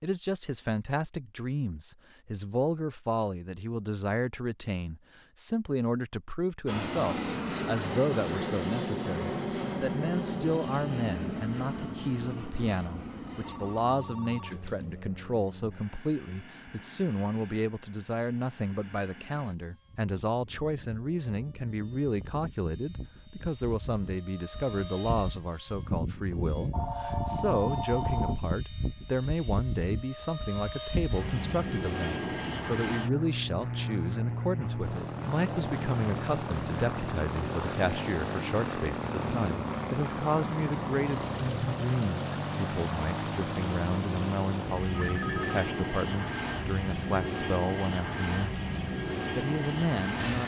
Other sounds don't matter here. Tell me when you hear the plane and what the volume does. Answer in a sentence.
The plane can be heard from 6.7 to 50.4 s, getting quieter then louder.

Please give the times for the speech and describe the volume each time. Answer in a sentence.
The speech can be heard from 0.0 to 50.4 s, at a steady volume.